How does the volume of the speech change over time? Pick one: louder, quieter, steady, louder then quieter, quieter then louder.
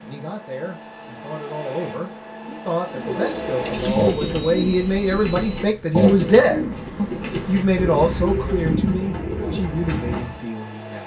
louder then quieter.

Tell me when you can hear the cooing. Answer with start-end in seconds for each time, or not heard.
2.9-10.4.